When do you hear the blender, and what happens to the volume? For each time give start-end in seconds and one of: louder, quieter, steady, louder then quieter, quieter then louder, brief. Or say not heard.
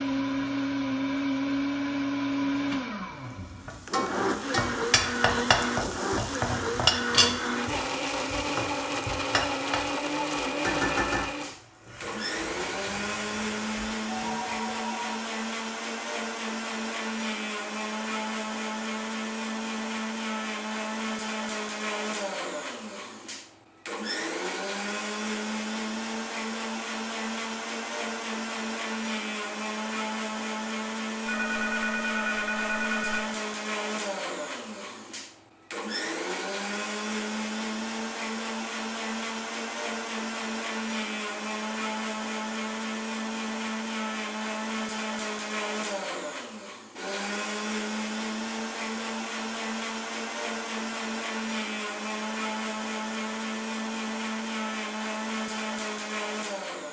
0.0-56.8 steady.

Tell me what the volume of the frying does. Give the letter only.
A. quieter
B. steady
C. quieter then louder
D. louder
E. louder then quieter
A.